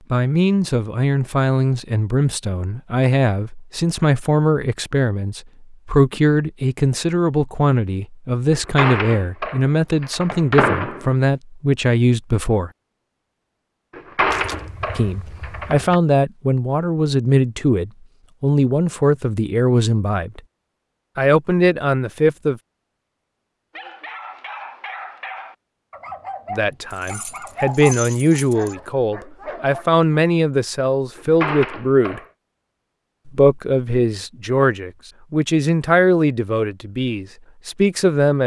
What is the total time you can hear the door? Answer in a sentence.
You can hear the door for 6 seconds altogether.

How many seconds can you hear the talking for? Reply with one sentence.
The talking can be heard for 30 seconds in total.